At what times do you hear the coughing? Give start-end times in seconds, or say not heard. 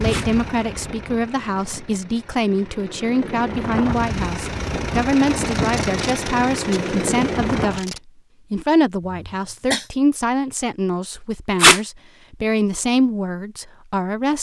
9.1-9.9.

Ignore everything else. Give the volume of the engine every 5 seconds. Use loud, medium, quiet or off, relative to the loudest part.
medium, loud, off.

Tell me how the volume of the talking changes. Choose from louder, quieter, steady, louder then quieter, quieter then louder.
steady.